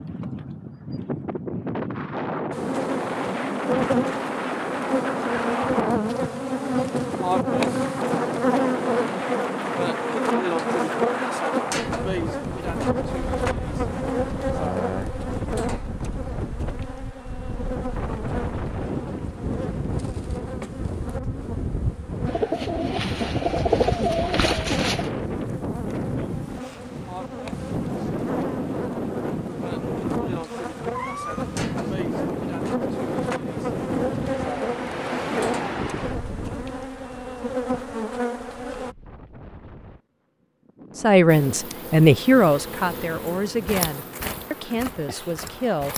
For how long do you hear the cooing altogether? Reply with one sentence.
You can hear the cooing for 3 seconds altogether.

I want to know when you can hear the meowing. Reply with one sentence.
You can hear the meowing from 30.9 to 31.5 s.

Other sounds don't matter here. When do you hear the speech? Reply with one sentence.
The speech can be heard from 41.0 to 45.9 s.